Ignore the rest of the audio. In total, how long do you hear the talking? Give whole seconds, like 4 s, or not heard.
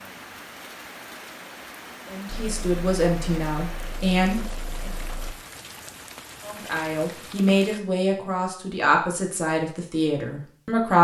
7 s.